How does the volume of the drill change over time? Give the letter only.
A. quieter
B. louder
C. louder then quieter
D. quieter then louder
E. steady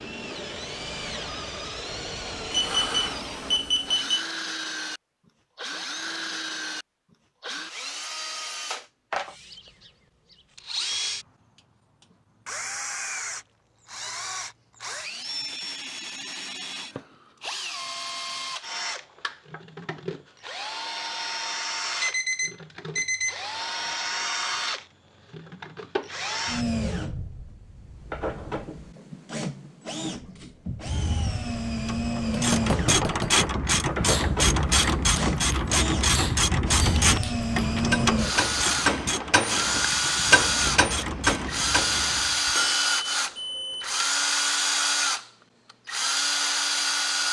B.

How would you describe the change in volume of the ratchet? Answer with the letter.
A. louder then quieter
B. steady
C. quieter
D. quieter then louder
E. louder
C.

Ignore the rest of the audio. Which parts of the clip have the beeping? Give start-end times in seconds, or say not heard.
2.5-4.2, 22.0-23.9, 42.5-44.1.